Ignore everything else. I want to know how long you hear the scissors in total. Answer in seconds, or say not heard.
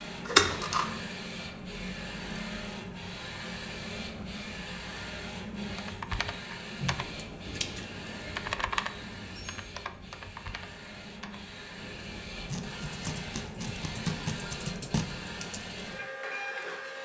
5 s.